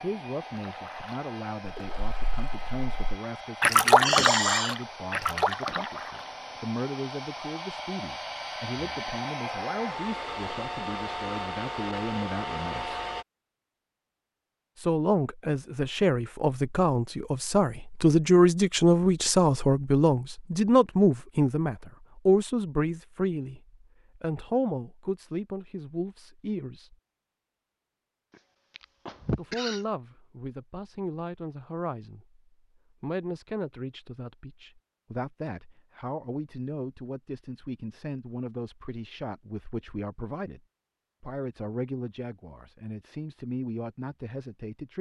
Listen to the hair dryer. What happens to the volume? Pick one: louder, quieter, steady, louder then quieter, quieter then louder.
louder.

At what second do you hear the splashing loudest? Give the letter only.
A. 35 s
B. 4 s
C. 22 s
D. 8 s
B.